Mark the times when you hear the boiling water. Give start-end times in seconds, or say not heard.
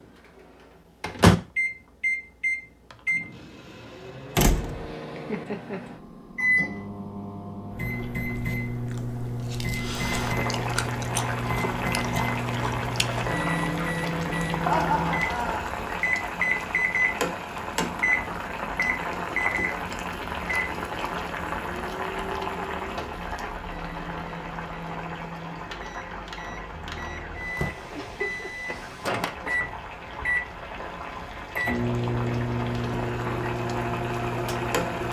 9.8-35.0.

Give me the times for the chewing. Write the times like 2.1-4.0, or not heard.
7.8-13.4.